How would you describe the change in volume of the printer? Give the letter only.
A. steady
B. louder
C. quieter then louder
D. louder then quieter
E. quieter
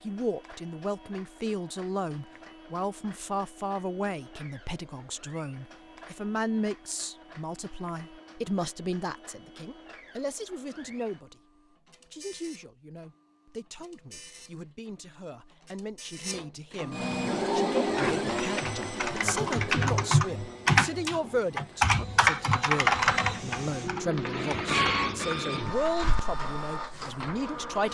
B.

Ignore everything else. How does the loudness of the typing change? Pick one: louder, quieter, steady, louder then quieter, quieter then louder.
louder then quieter.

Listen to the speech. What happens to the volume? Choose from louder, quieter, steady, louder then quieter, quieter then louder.
quieter then louder.